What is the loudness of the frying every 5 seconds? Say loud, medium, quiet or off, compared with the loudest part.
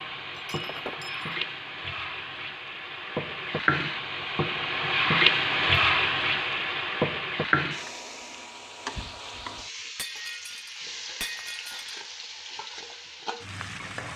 medium, loud, quiet.